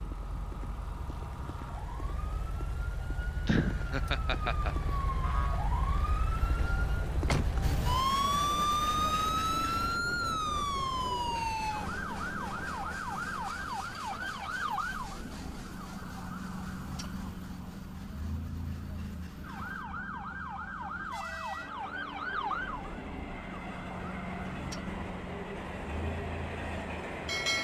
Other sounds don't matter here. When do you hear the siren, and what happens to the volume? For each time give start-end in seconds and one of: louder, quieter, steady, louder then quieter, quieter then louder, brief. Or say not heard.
0.0-27.5 louder then quieter.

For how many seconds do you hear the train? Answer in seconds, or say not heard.
20 s.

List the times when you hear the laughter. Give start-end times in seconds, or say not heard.
3.5-4.8.